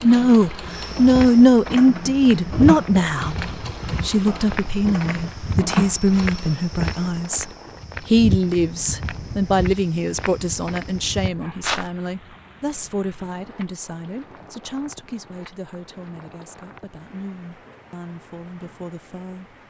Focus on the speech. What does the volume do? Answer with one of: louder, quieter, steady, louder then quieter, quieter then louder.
quieter.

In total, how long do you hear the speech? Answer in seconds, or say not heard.
19 s.